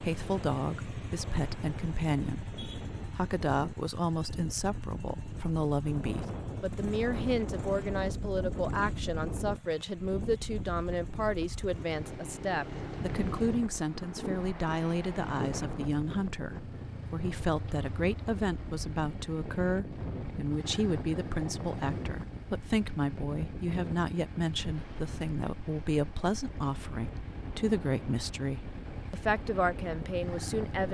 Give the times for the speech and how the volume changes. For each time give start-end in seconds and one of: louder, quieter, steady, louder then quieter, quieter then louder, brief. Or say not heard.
0.0-30.9 steady.